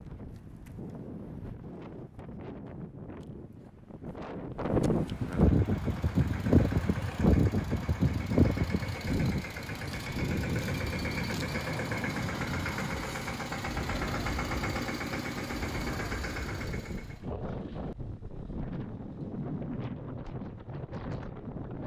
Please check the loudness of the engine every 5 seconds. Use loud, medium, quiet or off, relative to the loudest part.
off, medium, loud, loud, off.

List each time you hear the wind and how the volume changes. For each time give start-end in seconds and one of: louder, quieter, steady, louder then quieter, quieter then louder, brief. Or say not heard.
0.0-21.8 louder then quieter.